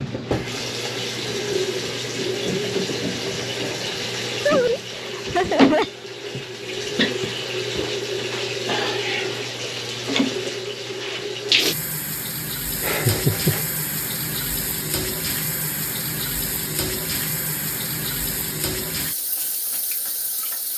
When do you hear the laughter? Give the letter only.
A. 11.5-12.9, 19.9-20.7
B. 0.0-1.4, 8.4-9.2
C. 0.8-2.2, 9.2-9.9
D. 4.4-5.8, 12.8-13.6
D.